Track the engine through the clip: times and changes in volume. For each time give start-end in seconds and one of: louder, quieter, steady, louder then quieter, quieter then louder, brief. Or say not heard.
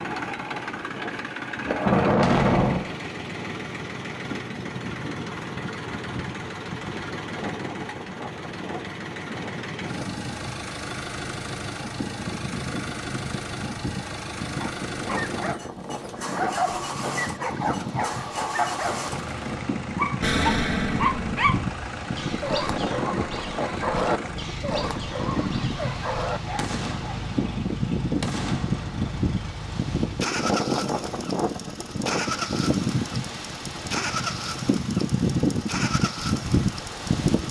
0.0-37.4 steady.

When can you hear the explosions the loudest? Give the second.
2 s.